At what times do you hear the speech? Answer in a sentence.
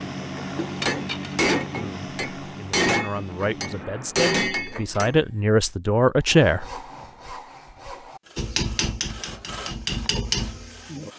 You can hear the speech from 1.8 to 6.7 s.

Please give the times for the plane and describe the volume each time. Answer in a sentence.
The plane can be heard from 0.0 to 4.2 s, getting quieter.